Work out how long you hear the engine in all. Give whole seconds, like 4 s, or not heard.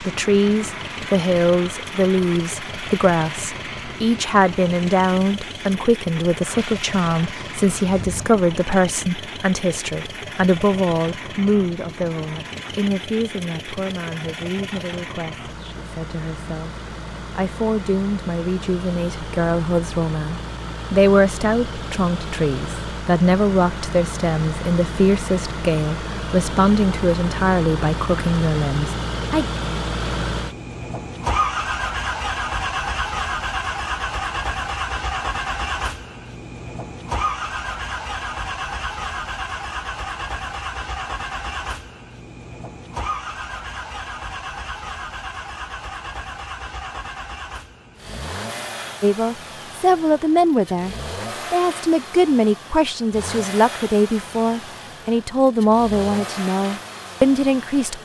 58 s.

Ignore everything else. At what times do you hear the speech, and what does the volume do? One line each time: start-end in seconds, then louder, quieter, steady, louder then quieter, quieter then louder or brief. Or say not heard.
0.0-29.4 quieter then louder
49.0-58.0 steady.